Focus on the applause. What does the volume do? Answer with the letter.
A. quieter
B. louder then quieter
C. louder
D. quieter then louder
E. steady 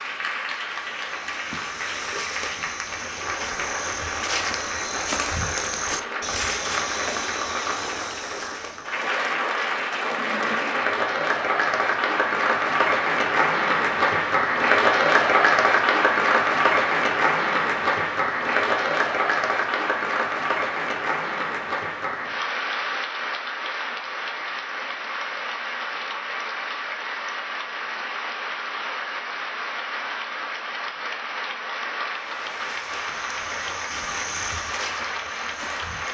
B.